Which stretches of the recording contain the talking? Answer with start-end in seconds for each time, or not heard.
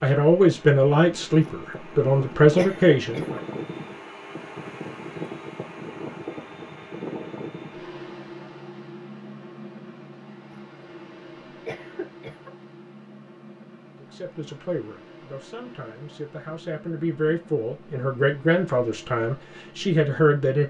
0.0-3.4, 14.0-20.6.